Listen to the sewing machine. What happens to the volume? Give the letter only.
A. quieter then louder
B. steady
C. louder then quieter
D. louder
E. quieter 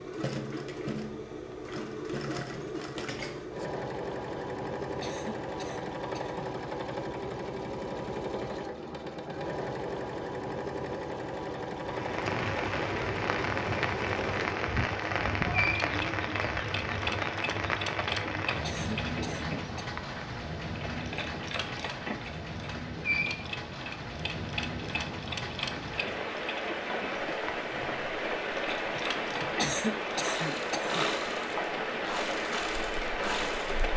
B.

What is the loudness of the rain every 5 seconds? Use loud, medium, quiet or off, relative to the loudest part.
off, off, loud, loud, medium, loud, loud.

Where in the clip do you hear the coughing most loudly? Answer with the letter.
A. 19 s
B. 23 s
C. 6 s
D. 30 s
D.